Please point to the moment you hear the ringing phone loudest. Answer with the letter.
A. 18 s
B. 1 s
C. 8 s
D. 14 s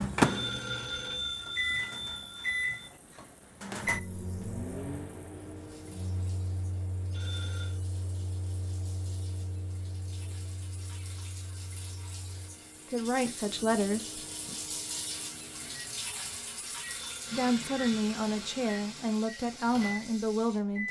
B.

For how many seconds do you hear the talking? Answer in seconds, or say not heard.
5 s.